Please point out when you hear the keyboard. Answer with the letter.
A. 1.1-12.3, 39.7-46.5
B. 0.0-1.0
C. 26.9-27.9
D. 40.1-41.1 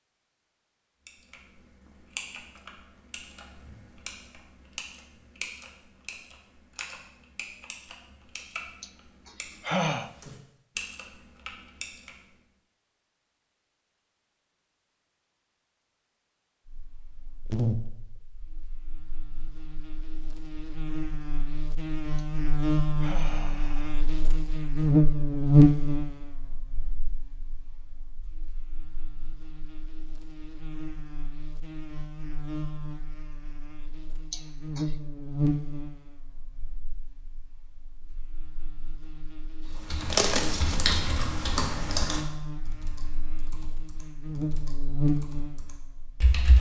A.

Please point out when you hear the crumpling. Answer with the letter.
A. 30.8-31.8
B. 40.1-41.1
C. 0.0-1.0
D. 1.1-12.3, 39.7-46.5
B.